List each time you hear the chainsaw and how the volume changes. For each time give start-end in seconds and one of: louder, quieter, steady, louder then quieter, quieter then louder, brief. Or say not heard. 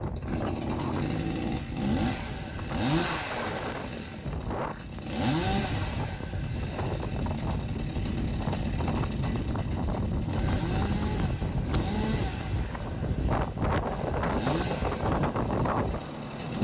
0.0-16.5 quieter.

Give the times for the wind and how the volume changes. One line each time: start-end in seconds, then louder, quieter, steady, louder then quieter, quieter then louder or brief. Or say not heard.
0.0-16.5 louder.